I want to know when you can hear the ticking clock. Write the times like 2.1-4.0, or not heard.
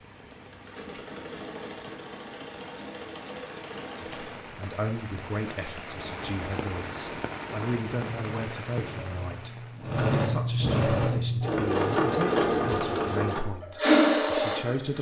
not heard.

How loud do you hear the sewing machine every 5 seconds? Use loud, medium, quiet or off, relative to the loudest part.
quiet, quiet, loud.